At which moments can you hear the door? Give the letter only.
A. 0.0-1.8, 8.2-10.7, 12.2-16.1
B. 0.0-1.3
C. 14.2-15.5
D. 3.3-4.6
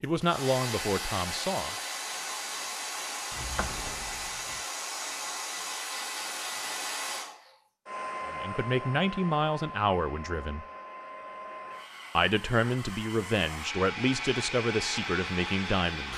D.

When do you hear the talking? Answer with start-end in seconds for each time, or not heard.
0.0-1.8, 8.2-10.7, 12.2-16.1.